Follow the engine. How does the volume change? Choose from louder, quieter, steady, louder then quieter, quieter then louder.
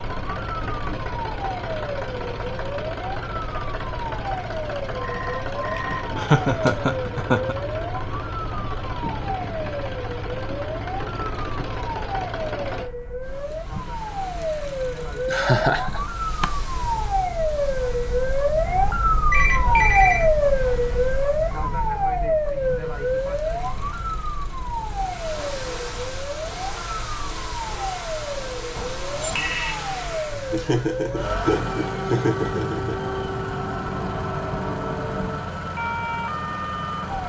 quieter then louder.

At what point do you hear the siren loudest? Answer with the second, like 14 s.
20 s.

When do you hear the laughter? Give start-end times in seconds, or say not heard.
5.8-7.5, 15.2-16.4, 30.5-33.0.